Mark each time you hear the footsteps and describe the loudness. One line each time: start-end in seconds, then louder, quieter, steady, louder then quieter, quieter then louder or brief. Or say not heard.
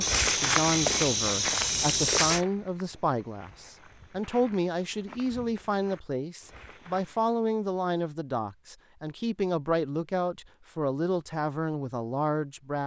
0.0-7.5 quieter.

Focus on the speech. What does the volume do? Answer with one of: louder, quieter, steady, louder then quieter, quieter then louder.
steady.